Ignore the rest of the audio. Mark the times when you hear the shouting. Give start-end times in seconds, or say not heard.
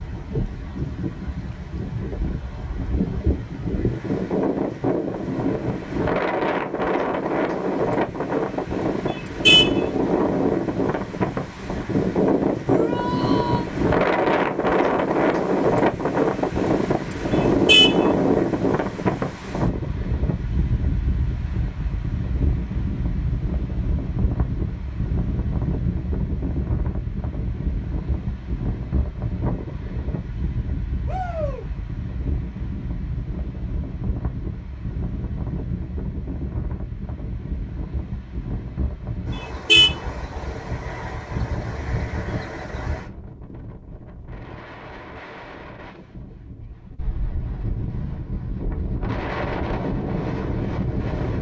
12.7-13.7, 31.1-31.6.